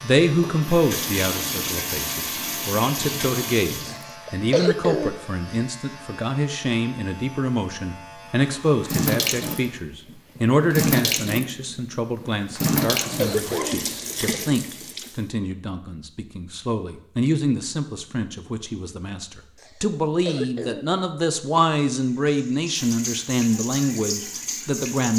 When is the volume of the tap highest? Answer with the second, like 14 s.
11 s.